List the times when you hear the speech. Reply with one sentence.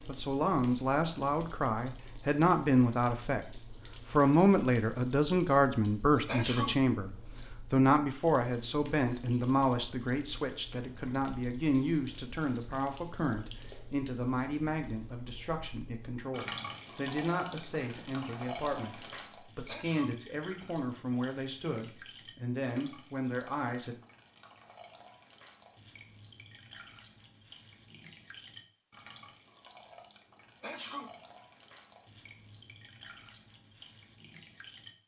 The speech can be heard from 0.1 to 23.9 s.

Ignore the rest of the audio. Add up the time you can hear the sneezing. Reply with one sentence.
The sneezing can be heard for 2 seconds in total.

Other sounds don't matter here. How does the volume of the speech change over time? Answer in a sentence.
The loudness of the speech goes down.